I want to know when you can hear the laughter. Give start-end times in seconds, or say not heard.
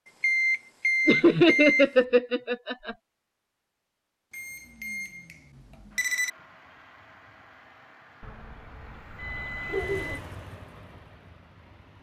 1.1-3.0, 9.7-10.2.